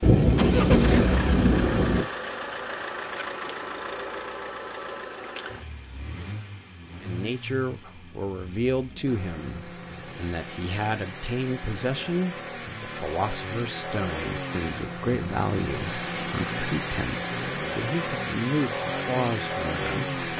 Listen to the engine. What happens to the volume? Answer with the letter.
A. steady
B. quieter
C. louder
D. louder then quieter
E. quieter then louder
E.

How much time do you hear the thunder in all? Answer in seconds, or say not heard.
2 s.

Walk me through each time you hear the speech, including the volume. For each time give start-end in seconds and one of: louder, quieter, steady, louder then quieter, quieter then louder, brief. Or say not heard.
7.0-20.2 steady.